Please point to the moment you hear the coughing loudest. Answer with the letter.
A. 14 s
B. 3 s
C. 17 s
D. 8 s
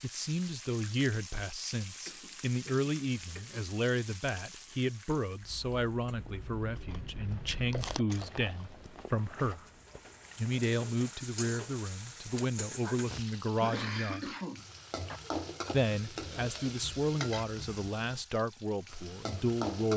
A.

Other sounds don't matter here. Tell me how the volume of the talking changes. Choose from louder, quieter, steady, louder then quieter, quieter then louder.
steady.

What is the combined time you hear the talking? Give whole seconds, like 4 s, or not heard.
18 s.